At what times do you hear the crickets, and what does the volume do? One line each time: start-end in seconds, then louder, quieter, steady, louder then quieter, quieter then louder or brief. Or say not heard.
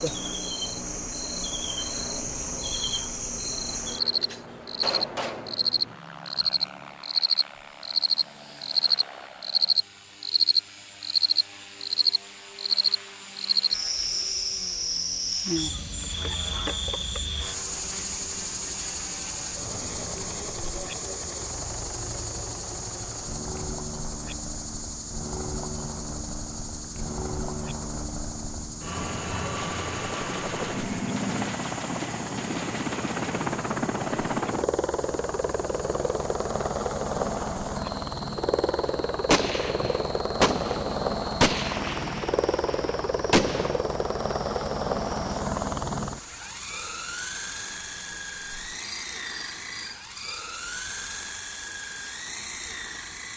0.0-53.3 quieter.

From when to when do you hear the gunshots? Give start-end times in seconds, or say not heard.
4.2-5.7, 29.6-33.5, 39.3-43.8.